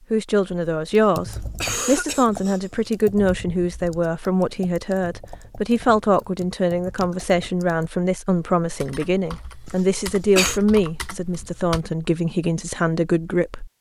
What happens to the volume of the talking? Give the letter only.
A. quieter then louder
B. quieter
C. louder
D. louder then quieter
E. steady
E.